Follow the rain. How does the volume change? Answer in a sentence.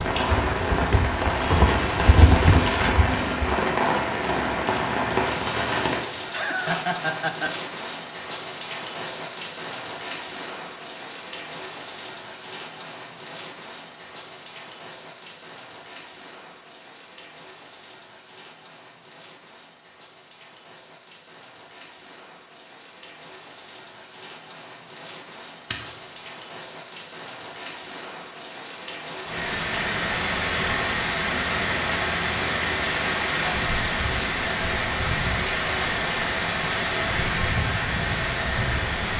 The loudness of the rain goes down, then up.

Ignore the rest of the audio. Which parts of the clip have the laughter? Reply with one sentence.
You can hear the laughter from 6.2 to 7.5 s.